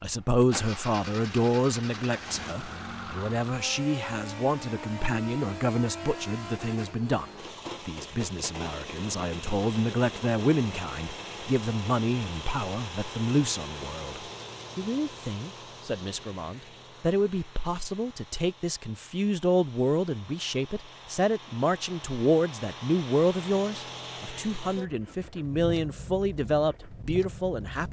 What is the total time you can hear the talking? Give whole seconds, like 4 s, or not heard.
27 s.